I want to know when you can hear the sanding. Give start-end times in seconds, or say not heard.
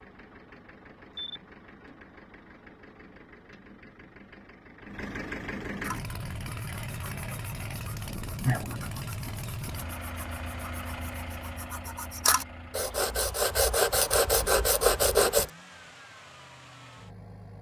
5.8-15.4.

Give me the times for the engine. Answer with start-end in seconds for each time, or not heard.
0.0-17.5.